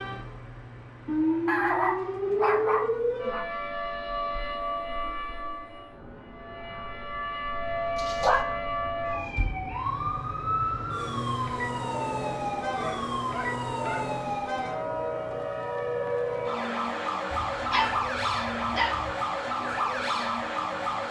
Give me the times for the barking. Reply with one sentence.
The barking can be heard from 1.4 to 3.5 s, from 8.0 to 8.4 s, from 12.8 to 14.0 s and from 17.5 to 19.1 s.